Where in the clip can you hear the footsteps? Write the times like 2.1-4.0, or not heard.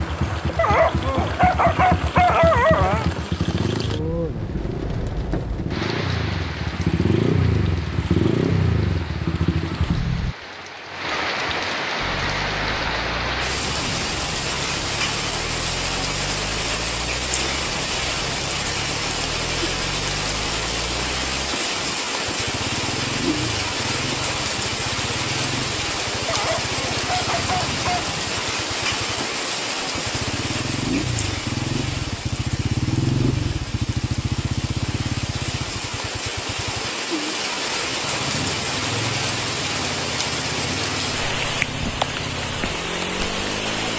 not heard.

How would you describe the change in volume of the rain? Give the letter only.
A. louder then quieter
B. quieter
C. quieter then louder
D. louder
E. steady
D.